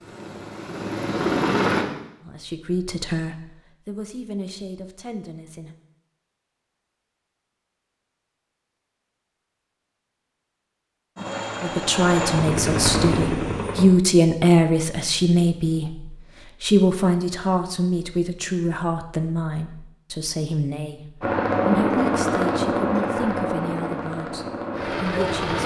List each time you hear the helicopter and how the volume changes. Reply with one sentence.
You can hear the helicopter briefly from 0.0 to 1.9 s; briefly from 11.2 to 13.8 s; and from 21.2 to 25.6 s, getting quieter.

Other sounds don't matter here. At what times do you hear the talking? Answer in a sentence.
The talking can be heard from 2.2 to 5.8 s and from 11.6 to 25.6 s.